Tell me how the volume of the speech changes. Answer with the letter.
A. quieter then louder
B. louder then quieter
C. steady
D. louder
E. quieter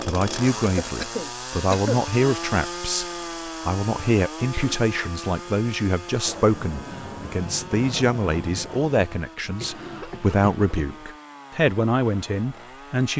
C.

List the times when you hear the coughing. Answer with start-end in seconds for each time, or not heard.
0.6-2.0, 4.5-5.2, 9.6-11.1.